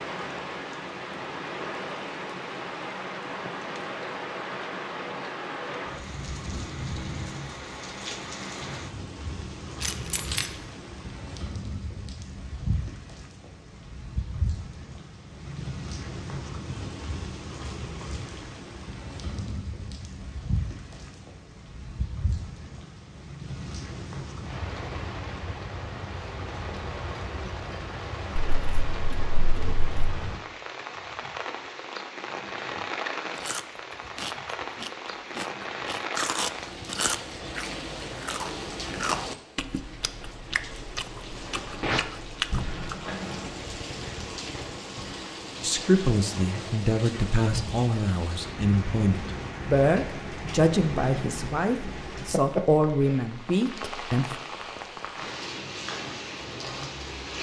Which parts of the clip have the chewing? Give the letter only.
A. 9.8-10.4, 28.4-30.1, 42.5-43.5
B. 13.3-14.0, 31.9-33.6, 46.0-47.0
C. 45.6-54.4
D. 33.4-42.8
D.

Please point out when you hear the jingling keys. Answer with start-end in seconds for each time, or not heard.
9.8-10.4, 28.4-30.1, 42.5-43.5.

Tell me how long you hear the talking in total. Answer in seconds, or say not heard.
9 s.